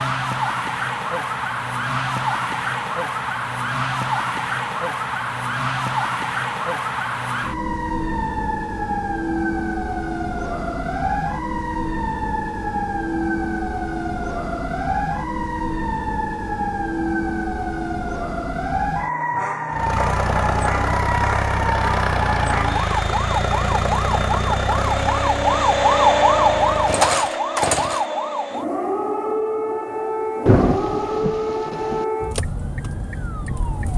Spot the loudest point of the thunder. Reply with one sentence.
The volume of the thunder peaks at 31 seconds.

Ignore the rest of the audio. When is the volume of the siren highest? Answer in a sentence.
The loudest moment of the siren is at 26 seconds.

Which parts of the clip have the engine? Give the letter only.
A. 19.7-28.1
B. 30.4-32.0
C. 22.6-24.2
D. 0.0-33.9
A.